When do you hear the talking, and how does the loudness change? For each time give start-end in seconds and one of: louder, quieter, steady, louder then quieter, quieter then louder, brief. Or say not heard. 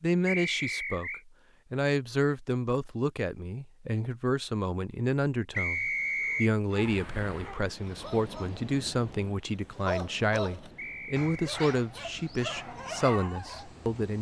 0.0-14.1 steady.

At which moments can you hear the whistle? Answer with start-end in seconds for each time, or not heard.
0.2-1.2, 5.5-6.5, 10.8-11.6.